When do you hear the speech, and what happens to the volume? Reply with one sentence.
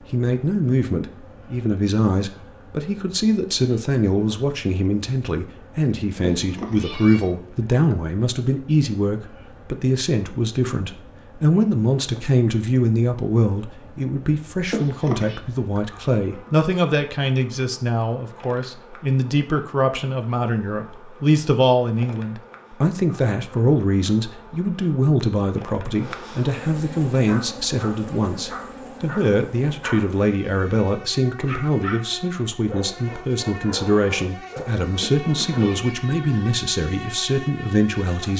The speech can be heard from 0.1 to 38.3 s, at a steady volume.